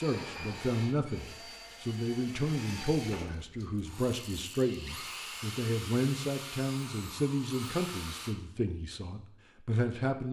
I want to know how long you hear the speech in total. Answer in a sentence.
The speech can be heard for 10 seconds in total.